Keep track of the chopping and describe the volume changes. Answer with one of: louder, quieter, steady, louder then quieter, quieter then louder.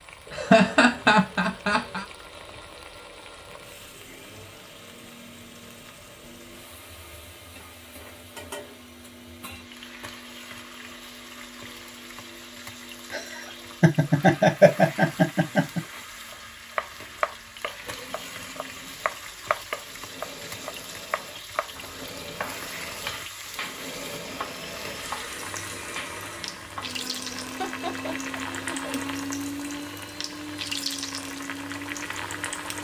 quieter.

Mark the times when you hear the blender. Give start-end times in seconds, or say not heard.
0.2-32.7.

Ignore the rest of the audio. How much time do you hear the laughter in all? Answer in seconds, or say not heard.
6 s.